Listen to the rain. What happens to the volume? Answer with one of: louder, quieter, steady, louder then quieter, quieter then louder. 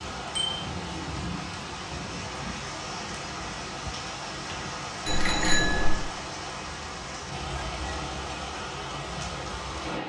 steady.